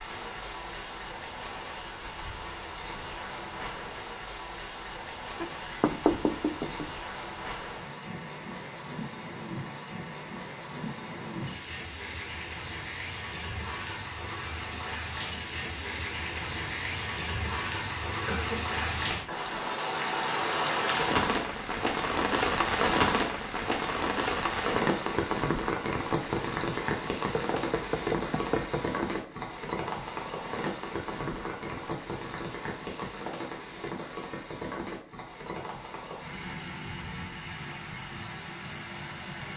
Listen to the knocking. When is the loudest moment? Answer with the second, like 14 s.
6 s.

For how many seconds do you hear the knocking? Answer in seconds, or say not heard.
3 s.